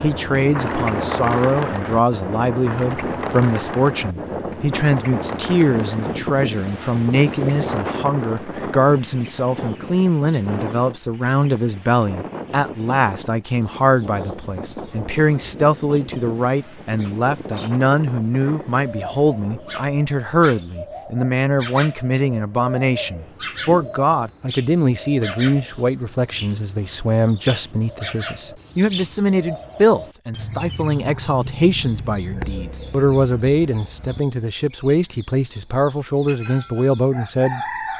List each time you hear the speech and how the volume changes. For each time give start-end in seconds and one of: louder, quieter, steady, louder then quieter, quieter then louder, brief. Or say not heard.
0.0-37.9 steady.